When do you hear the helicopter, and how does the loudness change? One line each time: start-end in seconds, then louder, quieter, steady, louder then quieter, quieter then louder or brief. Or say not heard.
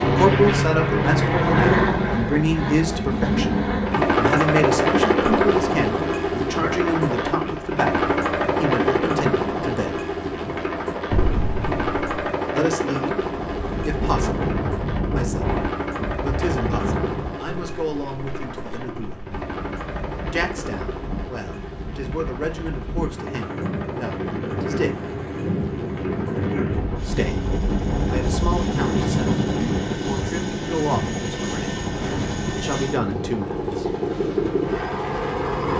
0.0-35.7 quieter then louder.